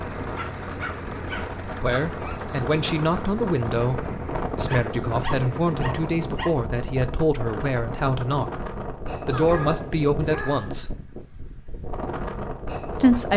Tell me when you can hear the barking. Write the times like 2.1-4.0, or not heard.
0.3-2.4, 4.7-6.5, 9.3-10.8.